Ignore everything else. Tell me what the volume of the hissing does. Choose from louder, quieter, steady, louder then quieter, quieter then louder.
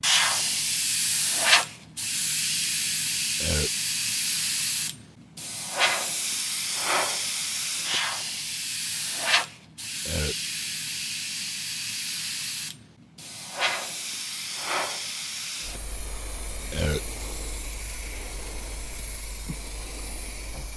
quieter.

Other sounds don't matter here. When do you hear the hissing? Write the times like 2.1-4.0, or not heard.
0.0-20.7.